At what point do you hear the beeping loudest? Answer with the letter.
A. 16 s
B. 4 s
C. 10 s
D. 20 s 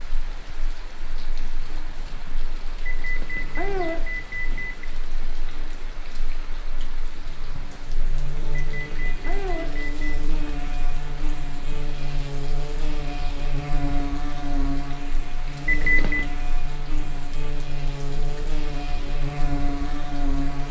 A.